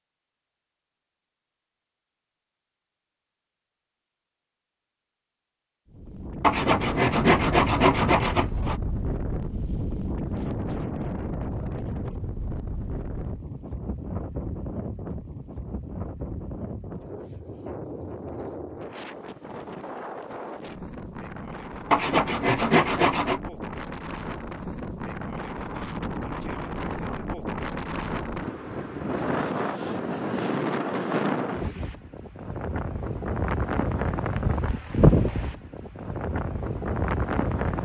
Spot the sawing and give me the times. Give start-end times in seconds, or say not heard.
6.4-8.8, 21.9-23.4.